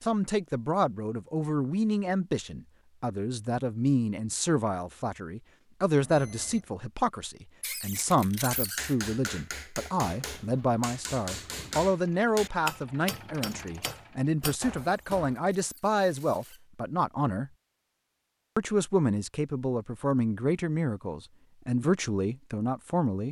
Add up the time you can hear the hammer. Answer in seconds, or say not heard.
7 s.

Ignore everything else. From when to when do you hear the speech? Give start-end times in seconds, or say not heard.
0.0-17.5, 18.6-23.2.